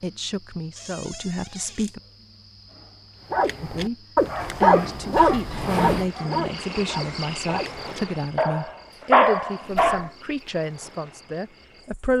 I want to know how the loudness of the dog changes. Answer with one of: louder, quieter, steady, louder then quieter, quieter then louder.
quieter then louder.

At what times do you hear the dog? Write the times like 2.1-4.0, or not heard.
3.3-10.1.